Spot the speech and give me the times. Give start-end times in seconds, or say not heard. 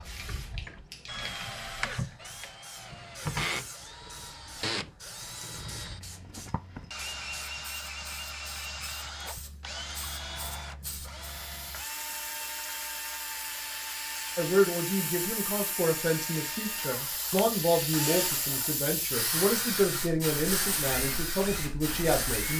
14.3-22.5.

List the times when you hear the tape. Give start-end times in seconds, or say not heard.
not heard.